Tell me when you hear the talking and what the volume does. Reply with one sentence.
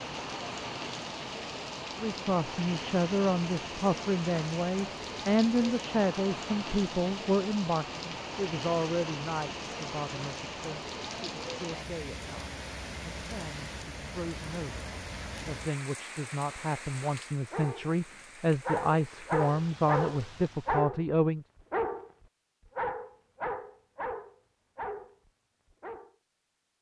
You can hear the talking from 2.0 to 21.4 s, getting quieter then louder.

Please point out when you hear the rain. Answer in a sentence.
The rain can be heard from 0.0 to 20.9 s.